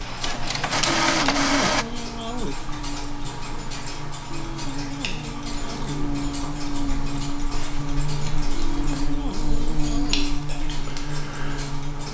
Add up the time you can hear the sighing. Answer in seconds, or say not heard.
5 s.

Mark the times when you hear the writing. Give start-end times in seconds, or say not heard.
not heard.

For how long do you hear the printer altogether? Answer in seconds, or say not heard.
2 s.